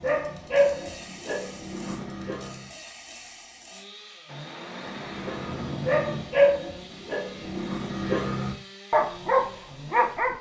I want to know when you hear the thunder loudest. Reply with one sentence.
The volume of the thunder peaks at 6 seconds.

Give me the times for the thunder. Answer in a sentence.
You can hear the thunder from 4.2 to 6.2 s.